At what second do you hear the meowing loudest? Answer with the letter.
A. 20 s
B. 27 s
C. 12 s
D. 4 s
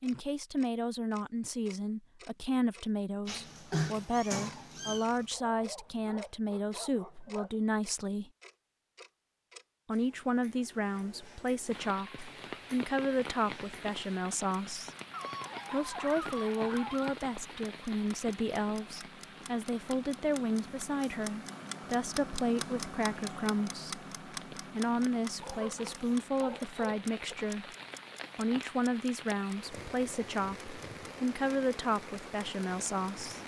D.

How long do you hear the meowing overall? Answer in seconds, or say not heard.
2 s.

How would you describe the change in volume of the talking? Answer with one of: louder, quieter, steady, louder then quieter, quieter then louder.
steady.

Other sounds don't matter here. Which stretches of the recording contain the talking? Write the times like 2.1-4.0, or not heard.
0.0-8.3, 9.8-14.9, 15.7-27.7, 28.4-33.4.